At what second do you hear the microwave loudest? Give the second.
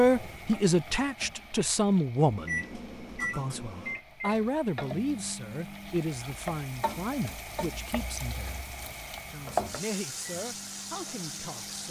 3 s.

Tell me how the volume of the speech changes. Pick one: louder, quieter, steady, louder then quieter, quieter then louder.
quieter.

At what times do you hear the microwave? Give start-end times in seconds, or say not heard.
2.3-6.0, 10.0-11.8.